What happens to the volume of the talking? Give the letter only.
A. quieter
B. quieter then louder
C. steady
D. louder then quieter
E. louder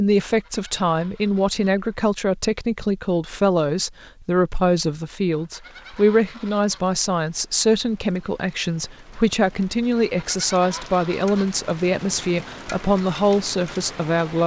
C.